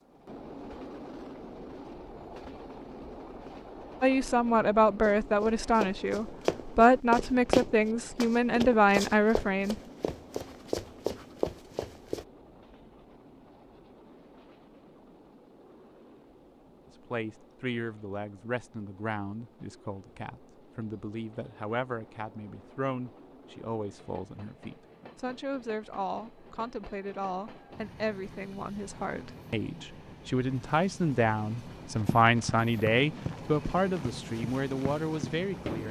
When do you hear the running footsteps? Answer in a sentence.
The running footsteps can be heard from 5.0 to 12.2 s and from 31.9 to 35.8 s.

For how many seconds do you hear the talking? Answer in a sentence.
The talking can be heard for 25 seconds in total.